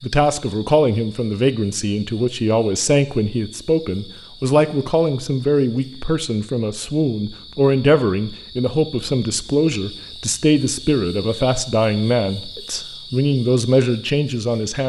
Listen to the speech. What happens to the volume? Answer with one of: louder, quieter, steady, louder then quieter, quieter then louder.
steady.